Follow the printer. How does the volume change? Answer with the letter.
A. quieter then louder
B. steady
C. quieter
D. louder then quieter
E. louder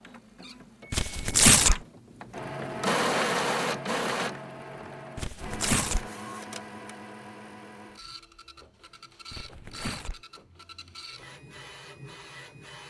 D.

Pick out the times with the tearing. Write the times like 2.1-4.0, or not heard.
0.9-1.8, 5.2-6.0, 9.3-10.2.